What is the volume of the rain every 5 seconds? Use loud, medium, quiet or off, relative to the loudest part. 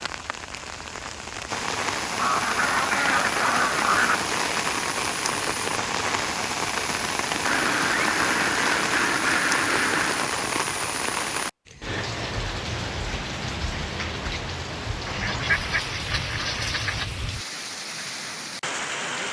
loud, loud, loud, medium.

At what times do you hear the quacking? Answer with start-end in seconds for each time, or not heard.
2.1-4.2, 7.4-10.3, 15.1-17.1.